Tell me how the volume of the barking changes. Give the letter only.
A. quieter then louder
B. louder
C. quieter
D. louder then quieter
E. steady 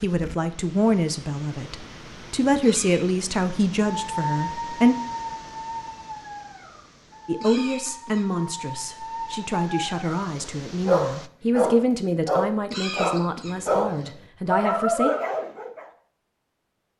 A.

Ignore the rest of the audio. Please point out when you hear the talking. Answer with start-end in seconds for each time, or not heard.
0.0-5.0, 7.2-15.1.